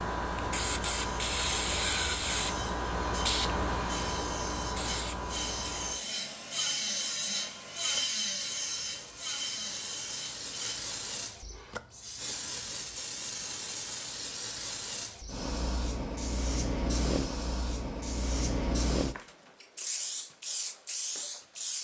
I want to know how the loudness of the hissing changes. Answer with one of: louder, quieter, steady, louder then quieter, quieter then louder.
quieter then louder.